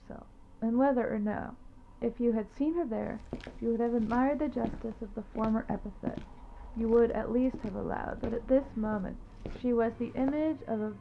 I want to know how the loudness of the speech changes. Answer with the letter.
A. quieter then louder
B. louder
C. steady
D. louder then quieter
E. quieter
C.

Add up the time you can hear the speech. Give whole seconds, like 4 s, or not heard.
10 s.